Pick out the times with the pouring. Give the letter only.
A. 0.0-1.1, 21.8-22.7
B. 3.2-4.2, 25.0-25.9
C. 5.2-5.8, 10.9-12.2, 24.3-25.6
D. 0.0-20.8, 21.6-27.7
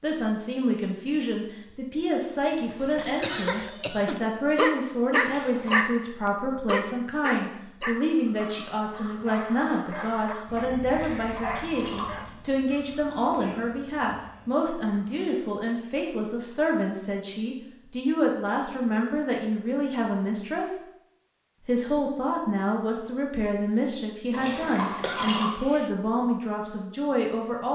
C.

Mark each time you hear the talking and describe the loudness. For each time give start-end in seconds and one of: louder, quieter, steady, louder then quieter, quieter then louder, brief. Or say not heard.
0.0-20.8 steady
21.6-27.7 steady.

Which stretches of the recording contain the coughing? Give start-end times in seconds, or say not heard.
3.2-4.2, 25.0-25.9.